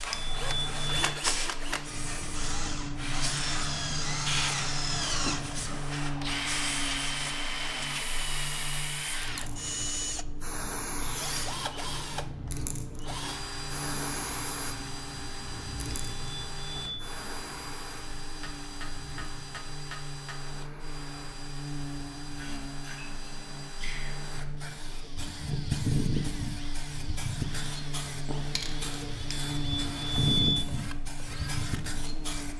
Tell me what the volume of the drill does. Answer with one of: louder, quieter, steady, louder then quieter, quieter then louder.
quieter.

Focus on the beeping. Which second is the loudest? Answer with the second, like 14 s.
30 s.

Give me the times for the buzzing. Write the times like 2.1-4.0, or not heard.
0.0-32.5.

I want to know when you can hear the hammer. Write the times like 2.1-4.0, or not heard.
18.4-20.4.